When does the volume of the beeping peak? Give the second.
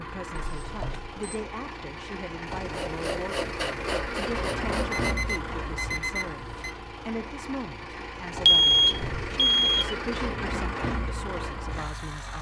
9 s.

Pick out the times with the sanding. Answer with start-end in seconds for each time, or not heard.
2.6-5.4.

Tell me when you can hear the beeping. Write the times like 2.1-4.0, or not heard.
0.3-1.1, 4.8-6.8, 8.4-9.9.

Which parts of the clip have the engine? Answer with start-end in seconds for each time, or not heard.
0.0-12.3.